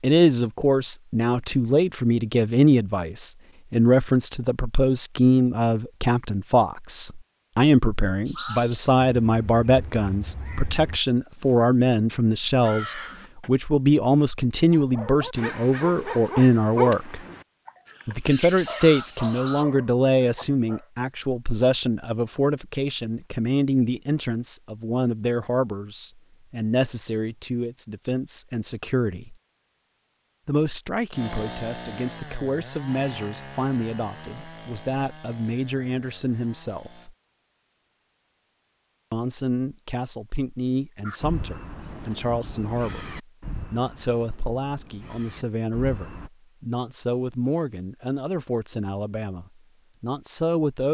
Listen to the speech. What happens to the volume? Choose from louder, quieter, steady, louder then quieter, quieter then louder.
quieter.